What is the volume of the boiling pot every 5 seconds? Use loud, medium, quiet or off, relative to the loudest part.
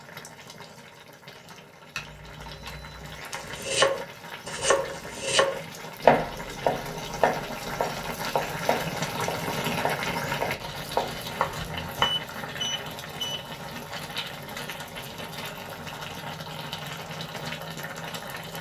medium, loud, loud, loud.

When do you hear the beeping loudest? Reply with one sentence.
The volume of the beeping peaks at 12 seconds.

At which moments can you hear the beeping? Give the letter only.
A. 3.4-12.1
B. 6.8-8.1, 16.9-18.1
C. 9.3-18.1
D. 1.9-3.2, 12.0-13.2
D.